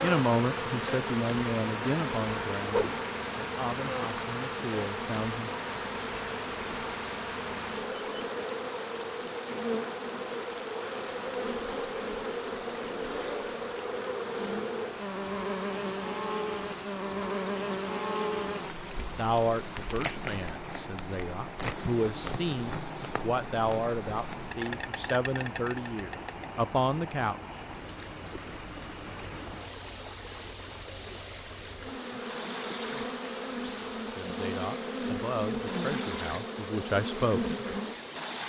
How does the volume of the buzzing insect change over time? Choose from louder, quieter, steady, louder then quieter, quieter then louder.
steady.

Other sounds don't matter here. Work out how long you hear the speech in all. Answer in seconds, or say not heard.
18 s.